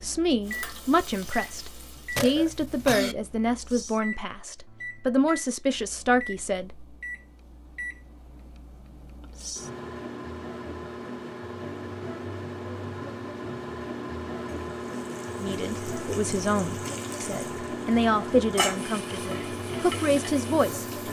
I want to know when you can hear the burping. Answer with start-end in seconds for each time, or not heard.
2.1-3.1.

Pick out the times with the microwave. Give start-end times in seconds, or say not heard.
0.0-21.0.